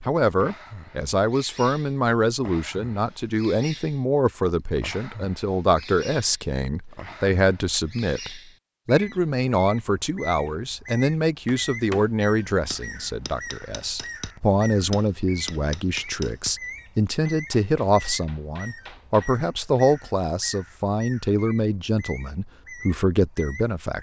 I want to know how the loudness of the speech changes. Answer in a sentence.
The loudness of the speech stays about the same.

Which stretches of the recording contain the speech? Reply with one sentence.
You can hear the speech from 0.1 to 23.9 s.